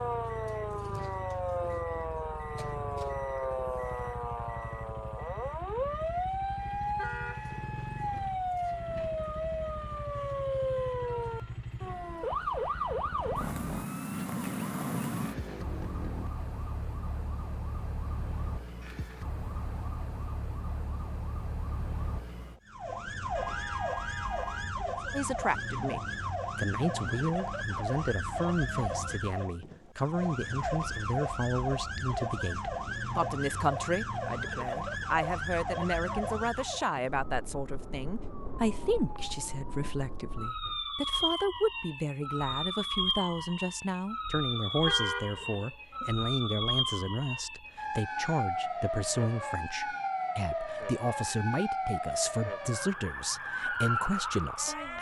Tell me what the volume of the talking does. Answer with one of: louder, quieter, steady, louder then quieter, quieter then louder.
steady.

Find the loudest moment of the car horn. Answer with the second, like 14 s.
45 s.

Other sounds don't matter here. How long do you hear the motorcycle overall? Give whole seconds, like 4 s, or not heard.
16 s.